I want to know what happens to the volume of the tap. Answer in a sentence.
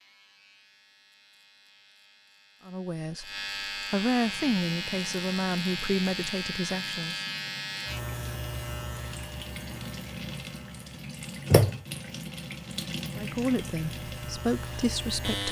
The loudness of the tap goes up, then down.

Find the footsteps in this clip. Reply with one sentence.
The footsteps can't be heard in this clip.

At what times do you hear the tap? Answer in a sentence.
You can hear the tap from 4.2 to 15.4 s.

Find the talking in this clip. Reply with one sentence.
You can hear the talking from 2.6 to 3.3 s, from 3.9 to 7.2 s and from 13.2 to 15.4 s.